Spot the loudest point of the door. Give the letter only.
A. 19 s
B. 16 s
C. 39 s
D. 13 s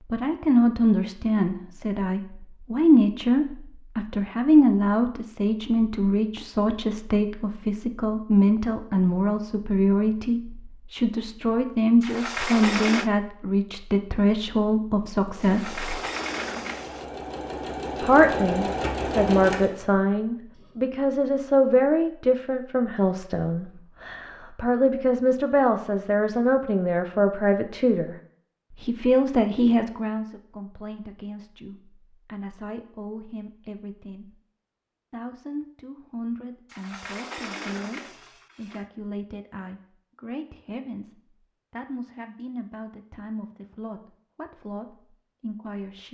D.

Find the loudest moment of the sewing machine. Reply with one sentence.
The volume of the sewing machine peaks at 19 seconds.